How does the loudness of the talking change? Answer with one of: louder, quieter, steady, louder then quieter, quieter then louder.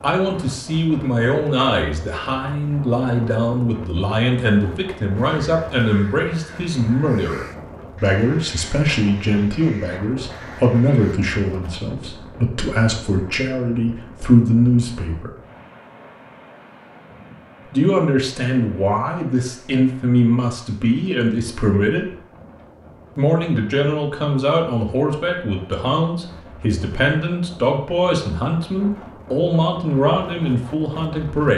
steady.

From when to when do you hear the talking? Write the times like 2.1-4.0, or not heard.
0.0-15.3, 17.7-22.1, 23.1-31.5.